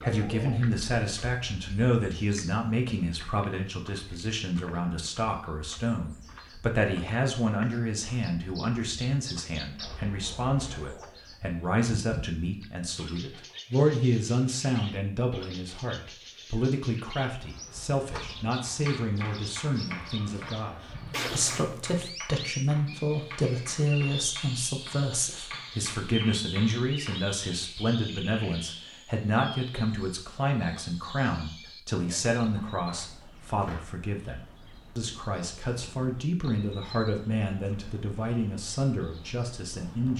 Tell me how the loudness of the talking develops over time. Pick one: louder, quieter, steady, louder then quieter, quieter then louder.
steady.